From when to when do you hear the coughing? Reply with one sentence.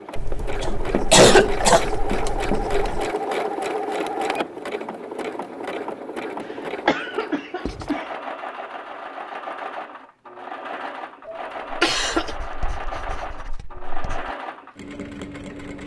You can hear the coughing from 0.6 to 2.3 s, from 6.8 to 8.0 s and from 11.2 to 12.3 s.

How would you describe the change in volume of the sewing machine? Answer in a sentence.
The volume of the sewing machine goes down.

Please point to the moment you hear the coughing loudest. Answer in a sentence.
The loudest moment of the coughing is at 1 second.